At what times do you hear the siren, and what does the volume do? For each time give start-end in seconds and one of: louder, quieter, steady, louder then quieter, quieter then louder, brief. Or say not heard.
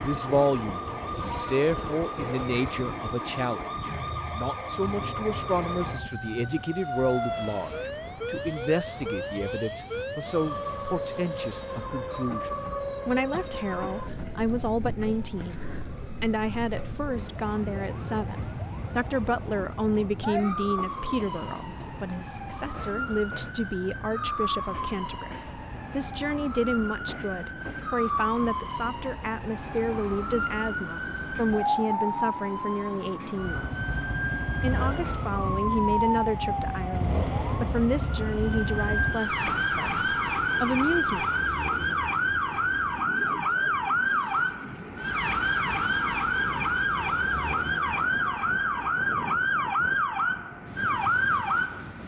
0.0-52.0 louder.